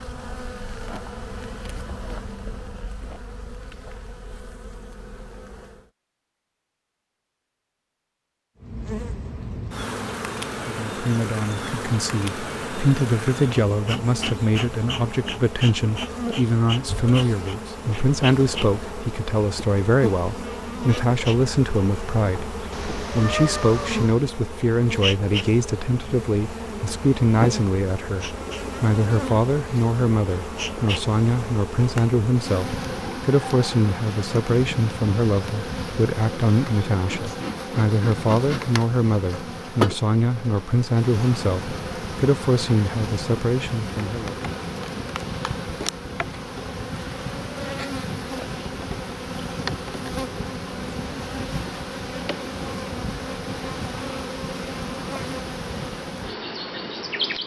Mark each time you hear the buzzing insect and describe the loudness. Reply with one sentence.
The buzzing insect can be heard from 0.0 to 5.9 s, getting quieter; and from 8.6 to 57.4 s, at a steady volume.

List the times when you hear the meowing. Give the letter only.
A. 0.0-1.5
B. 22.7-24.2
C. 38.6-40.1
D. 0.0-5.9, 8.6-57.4
B.